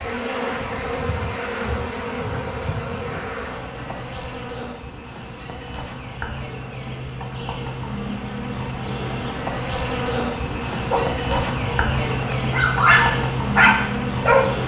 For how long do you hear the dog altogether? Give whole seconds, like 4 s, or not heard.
4 s.